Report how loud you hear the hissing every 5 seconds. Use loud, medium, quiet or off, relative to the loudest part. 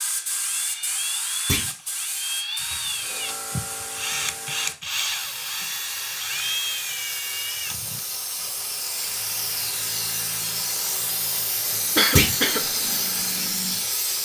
medium, medium, loud.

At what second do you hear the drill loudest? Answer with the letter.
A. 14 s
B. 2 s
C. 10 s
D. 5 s
D.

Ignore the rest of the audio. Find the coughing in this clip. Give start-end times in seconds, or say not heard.
11.9-12.7.